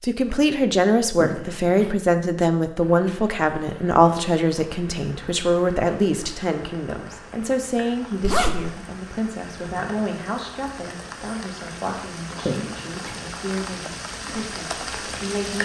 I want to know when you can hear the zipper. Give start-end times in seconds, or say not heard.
1.2-1.9, 8.2-8.8, 12.4-13.2.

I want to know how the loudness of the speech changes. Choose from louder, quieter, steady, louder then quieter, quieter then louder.
quieter.